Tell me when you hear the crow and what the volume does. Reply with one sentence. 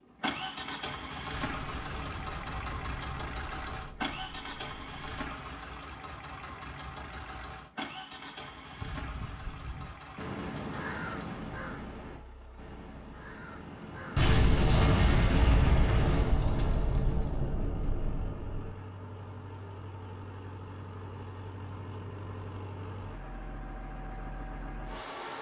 You can hear the crow from 8.8 to 14.3 s, getting louder then quieter.